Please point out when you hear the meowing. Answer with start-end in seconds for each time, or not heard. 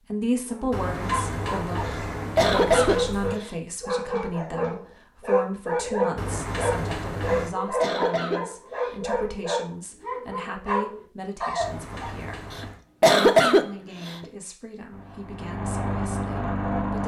not heard.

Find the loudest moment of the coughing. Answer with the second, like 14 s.
13 s.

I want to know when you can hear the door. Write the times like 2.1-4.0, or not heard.
0.7-3.4, 6.2-7.5, 11.6-12.8.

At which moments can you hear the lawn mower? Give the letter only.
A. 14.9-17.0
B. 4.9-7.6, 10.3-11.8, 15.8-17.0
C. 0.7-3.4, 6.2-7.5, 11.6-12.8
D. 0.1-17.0
A.